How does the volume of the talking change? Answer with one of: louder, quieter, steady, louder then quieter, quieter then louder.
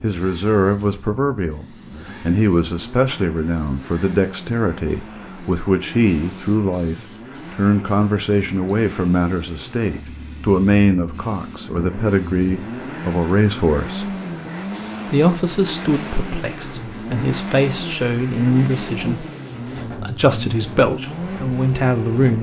steady.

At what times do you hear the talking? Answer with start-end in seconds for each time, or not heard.
0.0-14.2, 15.1-22.3.